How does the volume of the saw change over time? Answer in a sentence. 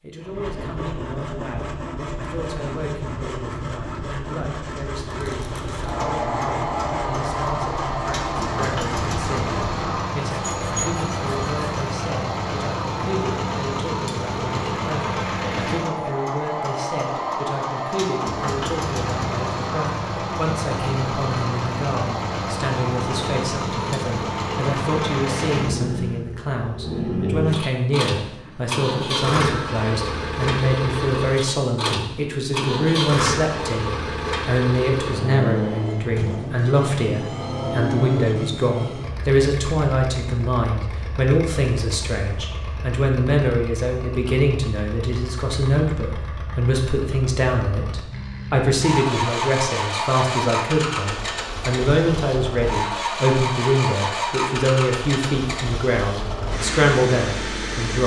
The volume of the saw stays about the same.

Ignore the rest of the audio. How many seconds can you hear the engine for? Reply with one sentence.
The engine can be heard for 53 seconds in total.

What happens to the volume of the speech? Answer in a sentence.
The volume of the speech goes up.